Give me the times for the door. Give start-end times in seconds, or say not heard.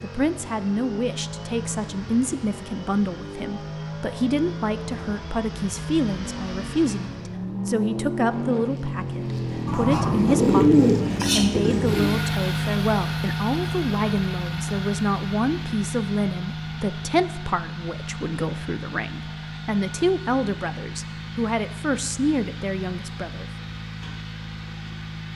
not heard.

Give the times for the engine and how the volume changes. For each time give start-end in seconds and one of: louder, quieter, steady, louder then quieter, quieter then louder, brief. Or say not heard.
0.0-25.3 louder then quieter.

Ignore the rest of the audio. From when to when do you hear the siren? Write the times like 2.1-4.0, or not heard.
not heard.